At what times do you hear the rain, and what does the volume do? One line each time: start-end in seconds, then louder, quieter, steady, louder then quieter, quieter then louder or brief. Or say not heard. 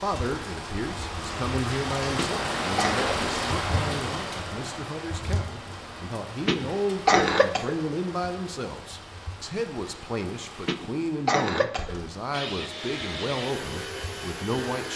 0.0-14.9 quieter.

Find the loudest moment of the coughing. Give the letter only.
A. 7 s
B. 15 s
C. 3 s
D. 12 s
A.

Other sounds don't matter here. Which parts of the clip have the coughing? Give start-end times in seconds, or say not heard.
2.1-3.1, 6.5-7.8, 10.7-11.9.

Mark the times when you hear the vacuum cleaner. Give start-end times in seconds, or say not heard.
12.3-14.9.